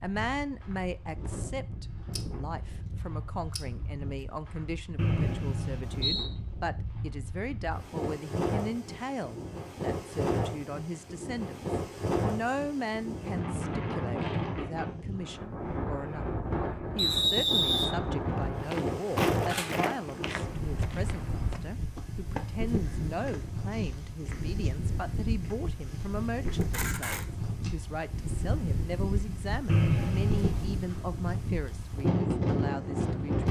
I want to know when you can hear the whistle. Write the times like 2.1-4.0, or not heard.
5.0-6.3, 16.9-18.4, 29.6-30.6.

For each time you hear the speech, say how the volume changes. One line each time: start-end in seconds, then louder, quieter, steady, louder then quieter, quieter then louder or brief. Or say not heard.
0.0-33.4 steady.